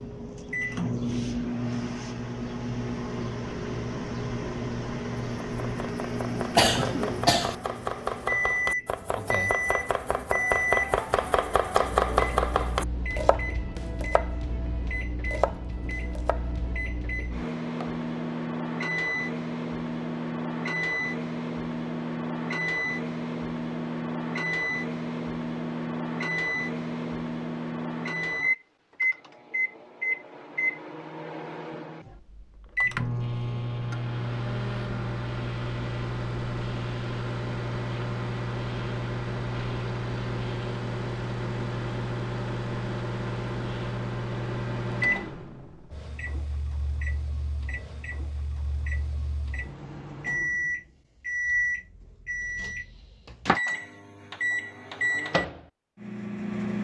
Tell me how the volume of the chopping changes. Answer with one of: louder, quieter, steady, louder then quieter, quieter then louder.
louder then quieter.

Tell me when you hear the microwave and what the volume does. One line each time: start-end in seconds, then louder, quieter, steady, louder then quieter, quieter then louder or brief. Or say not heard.
0.0-56.8 steady.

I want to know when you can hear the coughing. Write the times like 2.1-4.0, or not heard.
6.5-7.5.